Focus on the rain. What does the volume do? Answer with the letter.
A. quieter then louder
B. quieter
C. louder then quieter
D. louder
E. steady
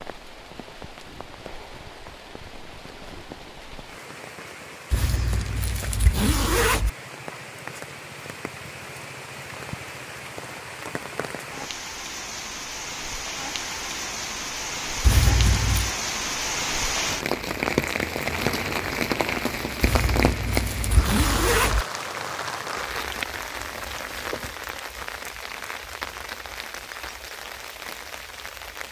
C.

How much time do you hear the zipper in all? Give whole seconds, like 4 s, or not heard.
5 s.